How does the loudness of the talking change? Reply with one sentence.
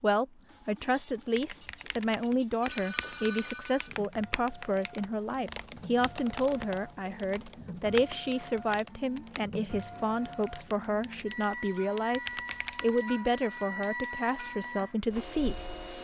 The loudness of the talking stays about the same.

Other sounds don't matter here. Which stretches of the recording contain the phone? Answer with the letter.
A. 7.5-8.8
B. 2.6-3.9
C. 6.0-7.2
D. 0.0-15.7
B.